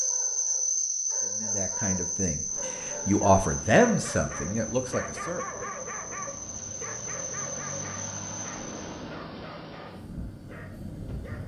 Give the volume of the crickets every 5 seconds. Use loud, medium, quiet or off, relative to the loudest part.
loud, medium, off.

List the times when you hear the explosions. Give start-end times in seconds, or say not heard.
8.5-9.8.